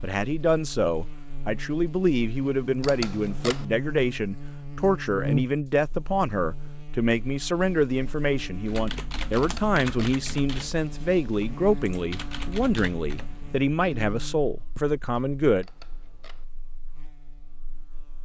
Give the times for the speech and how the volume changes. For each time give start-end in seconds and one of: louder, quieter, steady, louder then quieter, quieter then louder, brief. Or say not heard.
0.0-15.7 steady.